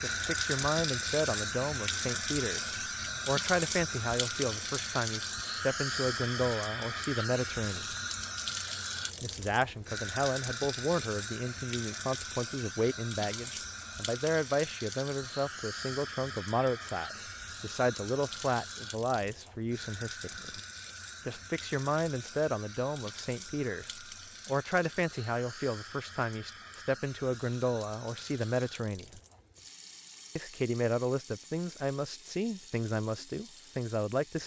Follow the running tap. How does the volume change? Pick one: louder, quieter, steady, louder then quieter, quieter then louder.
quieter.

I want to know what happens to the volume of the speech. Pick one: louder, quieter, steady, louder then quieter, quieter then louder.
steady.